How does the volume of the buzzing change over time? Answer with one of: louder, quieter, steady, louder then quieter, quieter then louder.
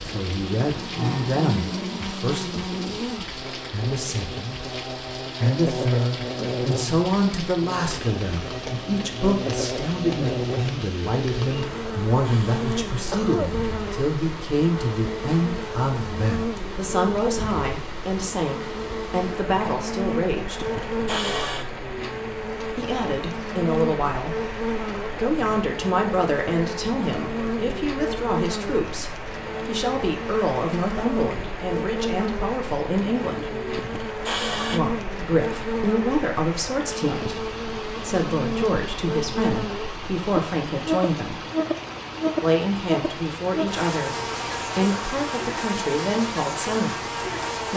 steady.